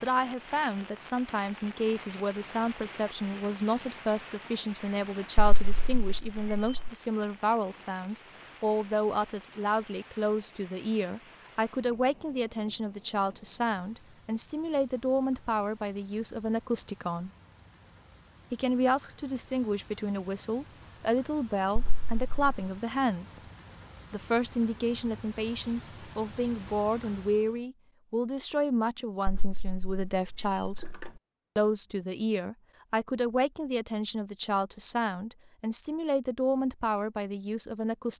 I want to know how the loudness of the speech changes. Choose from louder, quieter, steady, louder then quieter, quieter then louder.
steady.